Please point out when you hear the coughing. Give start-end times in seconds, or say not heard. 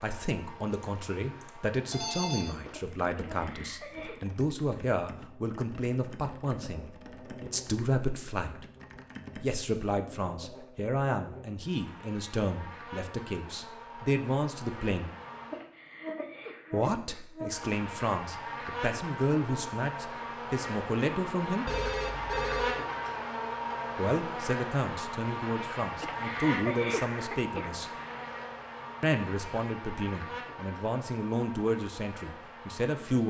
3.0-4.2, 15.4-17.2, 25.8-28.3.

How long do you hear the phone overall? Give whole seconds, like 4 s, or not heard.
3 s.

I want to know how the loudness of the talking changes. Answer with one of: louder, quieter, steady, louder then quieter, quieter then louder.
steady.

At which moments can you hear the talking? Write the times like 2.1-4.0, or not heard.
0.0-8.7, 9.3-15.2, 16.7-21.6, 23.9-27.9, 29.0-33.2.